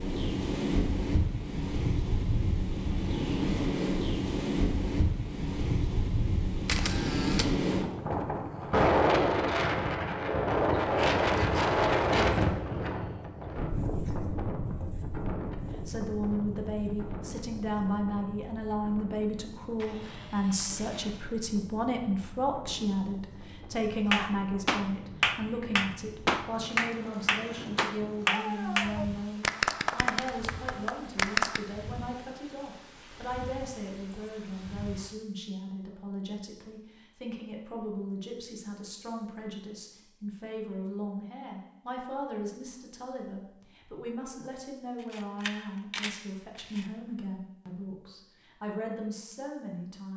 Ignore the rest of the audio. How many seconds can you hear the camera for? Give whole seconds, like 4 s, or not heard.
4 s.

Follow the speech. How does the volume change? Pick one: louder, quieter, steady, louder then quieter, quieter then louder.
quieter.